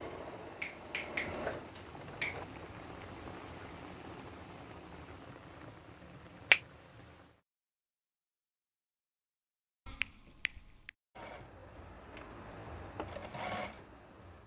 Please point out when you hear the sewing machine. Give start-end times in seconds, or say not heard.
0.0-2.5, 11.2-14.4.